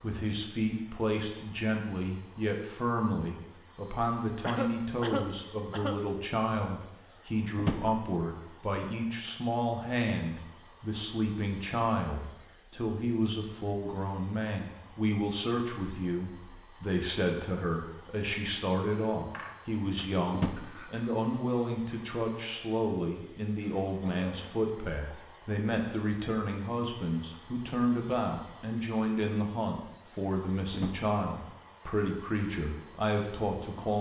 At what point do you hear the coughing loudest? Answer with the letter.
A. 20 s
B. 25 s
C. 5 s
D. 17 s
C.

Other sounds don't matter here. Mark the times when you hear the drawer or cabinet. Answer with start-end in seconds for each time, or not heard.
7.5-8.0, 20.3-20.9, 30.7-31.1.